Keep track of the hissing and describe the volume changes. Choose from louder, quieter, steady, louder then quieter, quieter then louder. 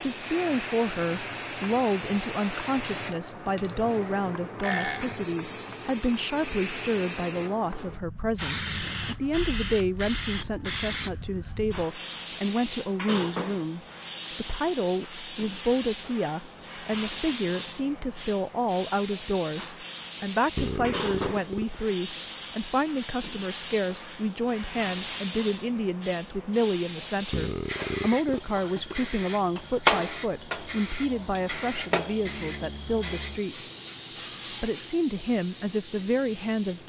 steady.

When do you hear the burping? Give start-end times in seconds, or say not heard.
4.6-5.2, 20.6-21.8, 27.3-28.6.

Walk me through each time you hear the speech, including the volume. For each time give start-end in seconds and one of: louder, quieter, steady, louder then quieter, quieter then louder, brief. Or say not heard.
0.0-33.6 steady
34.5-36.8 brief.